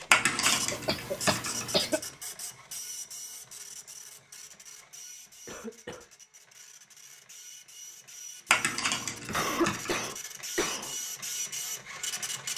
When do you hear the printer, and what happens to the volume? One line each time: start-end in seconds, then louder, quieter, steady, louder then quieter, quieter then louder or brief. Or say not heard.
0.0-12.5 quieter then louder.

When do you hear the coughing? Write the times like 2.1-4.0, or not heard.
0.5-2.0, 5.5-6.0, 9.2-10.9.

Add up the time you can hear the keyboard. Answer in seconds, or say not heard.
3 s.